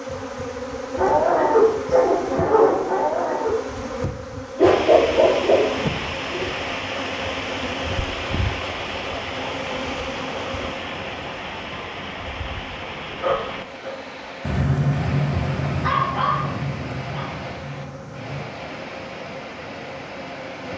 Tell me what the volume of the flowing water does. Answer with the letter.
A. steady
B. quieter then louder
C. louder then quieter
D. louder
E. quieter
E.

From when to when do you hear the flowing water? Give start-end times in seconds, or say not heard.
4.5-20.7.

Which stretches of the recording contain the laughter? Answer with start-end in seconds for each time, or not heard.
not heard.